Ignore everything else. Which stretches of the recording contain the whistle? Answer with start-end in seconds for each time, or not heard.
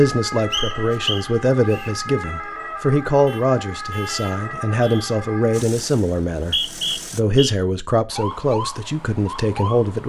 0.5-1.9, 6.3-7.5.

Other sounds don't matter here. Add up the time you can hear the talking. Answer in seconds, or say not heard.
10 s.